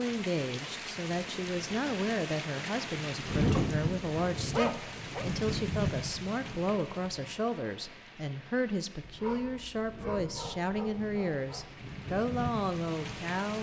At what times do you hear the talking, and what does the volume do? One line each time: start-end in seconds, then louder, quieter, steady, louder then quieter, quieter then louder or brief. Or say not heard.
0.0-13.5 steady.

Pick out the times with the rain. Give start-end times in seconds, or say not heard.
0.0-13.5.